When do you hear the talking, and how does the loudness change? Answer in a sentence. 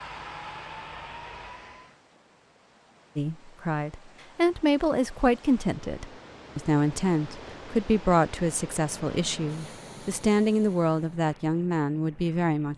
You can hear the talking from 3.1 to 12.7 s, at a steady volume.